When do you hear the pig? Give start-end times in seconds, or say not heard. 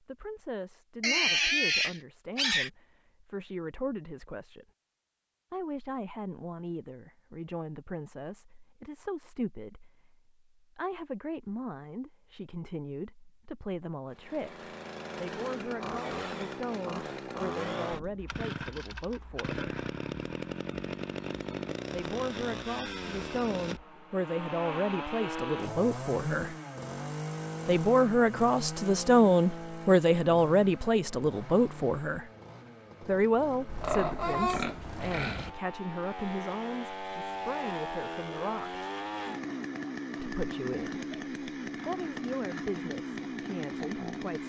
1.0-2.7, 33.6-35.5.